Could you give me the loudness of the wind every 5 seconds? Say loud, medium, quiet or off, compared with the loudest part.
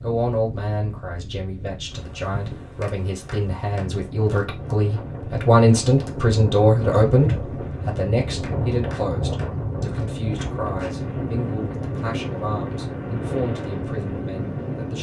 medium, loud, loud.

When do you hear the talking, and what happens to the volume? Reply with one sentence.
The talking can be heard from 0.0 to 14.9 s, getting louder then quieter.